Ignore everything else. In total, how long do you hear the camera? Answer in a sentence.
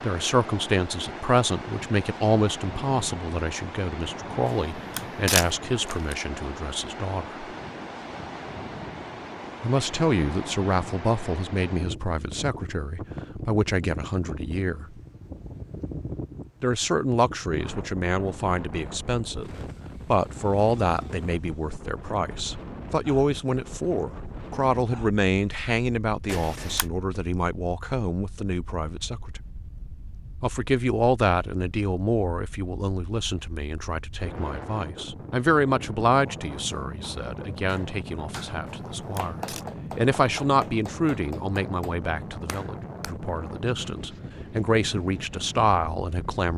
The camera can be heard for 3 seconds in total.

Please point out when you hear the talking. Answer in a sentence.
The talking can be heard from 0.0 to 7.4 s, from 9.6 to 15.0 s, from 16.6 to 29.4 s and from 30.4 to 46.5 s.